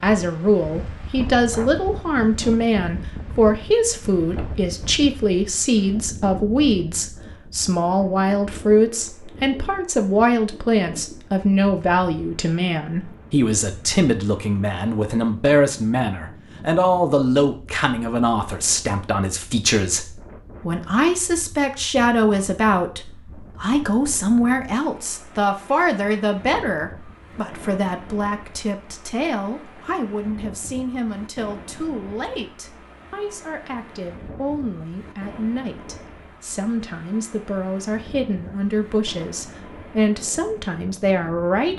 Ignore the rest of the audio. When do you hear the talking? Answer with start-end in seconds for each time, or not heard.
0.0-41.7.